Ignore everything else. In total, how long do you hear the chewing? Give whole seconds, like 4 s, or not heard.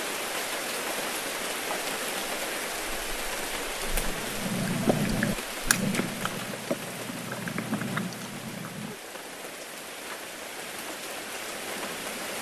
5 s.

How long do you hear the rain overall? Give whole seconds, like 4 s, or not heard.
12 s.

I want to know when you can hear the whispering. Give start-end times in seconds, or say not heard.
not heard.